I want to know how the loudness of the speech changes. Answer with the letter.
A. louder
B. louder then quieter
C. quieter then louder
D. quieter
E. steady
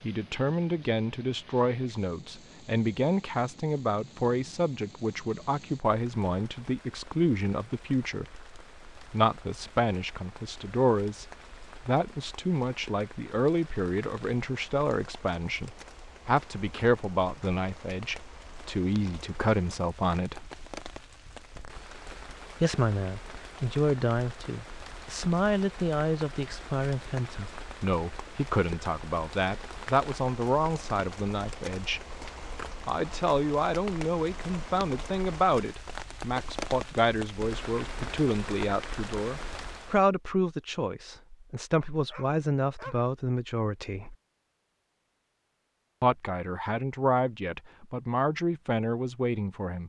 E.